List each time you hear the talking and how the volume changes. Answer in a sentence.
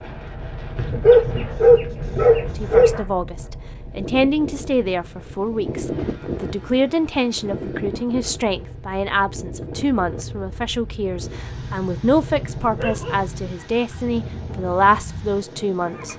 You can hear the talking from 2.4 to 16.1 s, at a steady volume.